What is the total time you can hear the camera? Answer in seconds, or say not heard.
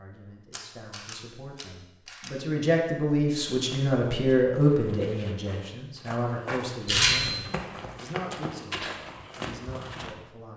2 s.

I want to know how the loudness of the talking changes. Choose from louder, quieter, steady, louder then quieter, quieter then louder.
louder then quieter.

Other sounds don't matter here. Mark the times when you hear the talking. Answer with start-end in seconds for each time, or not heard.
0.0-10.5.